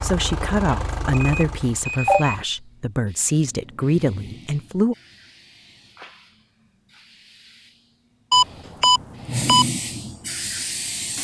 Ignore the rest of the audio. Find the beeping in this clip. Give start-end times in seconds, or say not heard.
1.4-2.4, 8.3-9.7.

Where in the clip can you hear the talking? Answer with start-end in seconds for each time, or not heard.
0.0-5.0.